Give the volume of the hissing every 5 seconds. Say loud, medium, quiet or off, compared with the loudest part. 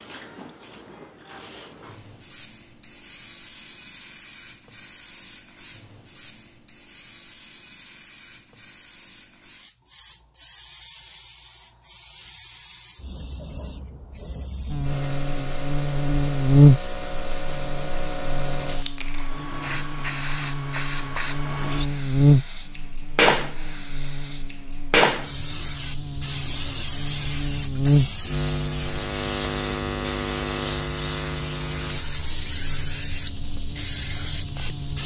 quiet, quiet, quiet, medium, loud, loud, loud.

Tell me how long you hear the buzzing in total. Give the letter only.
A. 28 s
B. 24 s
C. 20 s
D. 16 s
C.